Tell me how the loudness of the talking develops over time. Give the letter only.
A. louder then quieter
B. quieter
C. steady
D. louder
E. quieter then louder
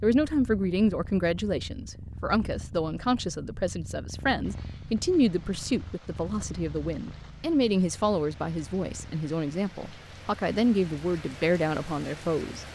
C.